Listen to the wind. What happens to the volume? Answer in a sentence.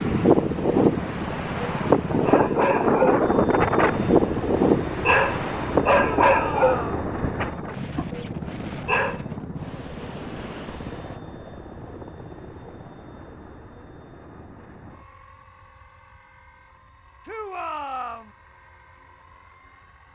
The loudness of the wind goes down.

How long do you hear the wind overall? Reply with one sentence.
The wind can be heard for 11 seconds in total.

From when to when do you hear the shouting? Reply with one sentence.
You can hear the shouting from 6.0 to 7.0 s and from 17.2 to 18.3 s.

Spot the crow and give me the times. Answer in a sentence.
The crow can't be heard in this clip.